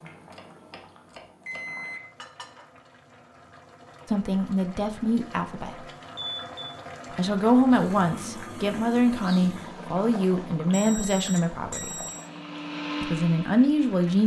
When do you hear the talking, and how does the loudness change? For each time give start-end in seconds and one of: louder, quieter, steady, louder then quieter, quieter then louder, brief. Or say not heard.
4.0-5.8 brief
7.2-12.0 steady
13.0-14.2 brief.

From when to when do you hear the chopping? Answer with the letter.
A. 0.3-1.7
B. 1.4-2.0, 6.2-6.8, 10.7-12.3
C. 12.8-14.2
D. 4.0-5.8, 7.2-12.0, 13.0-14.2
A.